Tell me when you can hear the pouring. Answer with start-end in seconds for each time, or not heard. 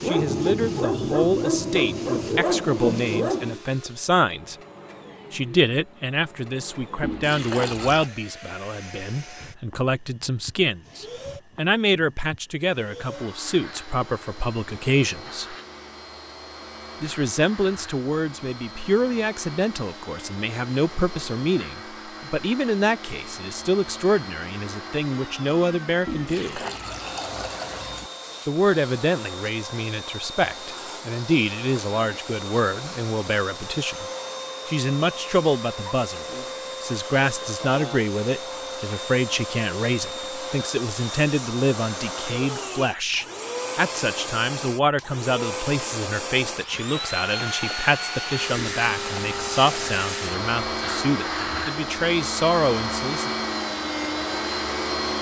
7.0-8.1, 26.1-28.1, 48.5-50.0.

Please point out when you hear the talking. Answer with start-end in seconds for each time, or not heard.
0.0-4.5, 5.3-15.6, 17.0-26.6, 28.4-34.0, 34.6-53.3.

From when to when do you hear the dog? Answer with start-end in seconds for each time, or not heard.
0.0-3.6.